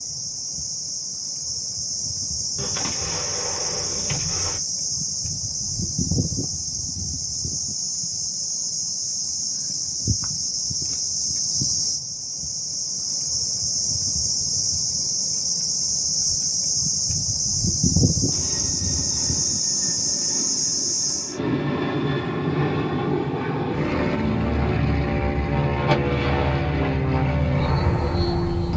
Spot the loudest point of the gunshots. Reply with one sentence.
The loudest moment of the gunshots is at 26 seconds.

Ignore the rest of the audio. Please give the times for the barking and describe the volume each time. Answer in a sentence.
You can't hear the barking here.